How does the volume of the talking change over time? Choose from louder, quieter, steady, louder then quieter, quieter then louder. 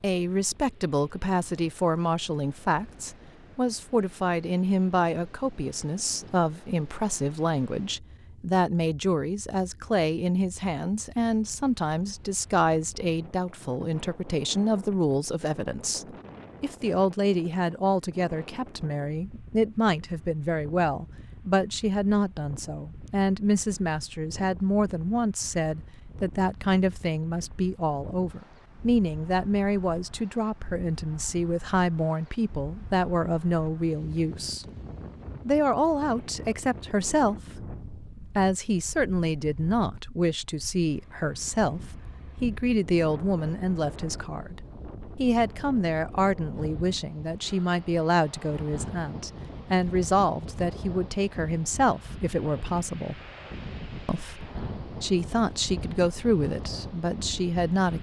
steady.